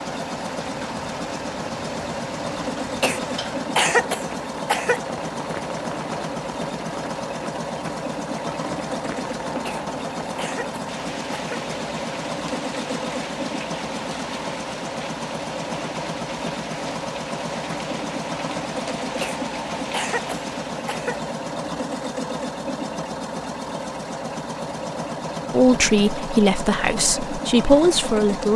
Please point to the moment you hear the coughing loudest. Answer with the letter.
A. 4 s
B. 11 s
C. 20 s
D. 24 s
A.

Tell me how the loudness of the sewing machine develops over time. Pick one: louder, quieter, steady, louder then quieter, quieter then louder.
steady.